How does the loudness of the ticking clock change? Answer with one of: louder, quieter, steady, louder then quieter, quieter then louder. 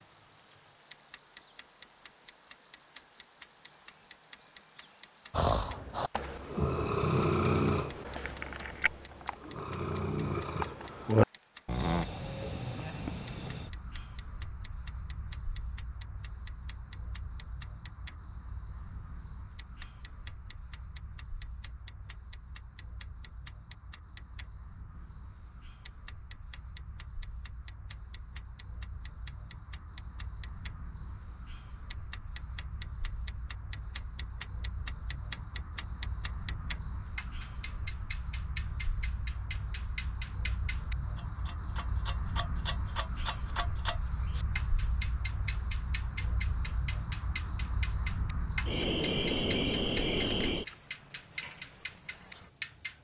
louder.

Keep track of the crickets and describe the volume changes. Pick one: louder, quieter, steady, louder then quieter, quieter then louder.
quieter then louder.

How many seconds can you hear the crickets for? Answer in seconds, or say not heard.
53 s.